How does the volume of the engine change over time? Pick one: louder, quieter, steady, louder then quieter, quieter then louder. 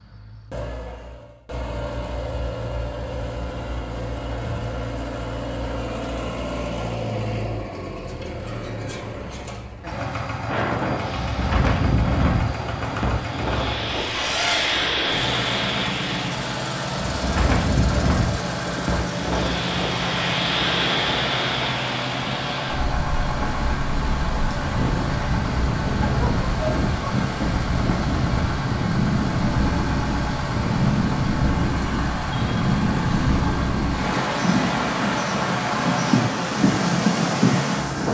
steady.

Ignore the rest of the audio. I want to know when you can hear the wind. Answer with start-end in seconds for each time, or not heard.
10.4-38.0.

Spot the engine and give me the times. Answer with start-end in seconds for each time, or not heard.
0.0-38.0.